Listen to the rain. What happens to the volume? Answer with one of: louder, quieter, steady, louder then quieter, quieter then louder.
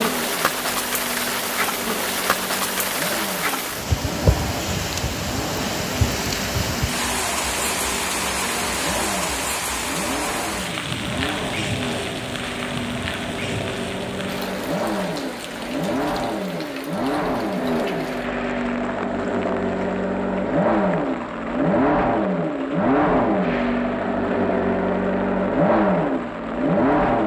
quieter.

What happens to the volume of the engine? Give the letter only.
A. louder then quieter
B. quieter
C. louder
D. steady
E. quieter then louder
C.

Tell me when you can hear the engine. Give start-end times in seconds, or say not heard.
0.0-27.2.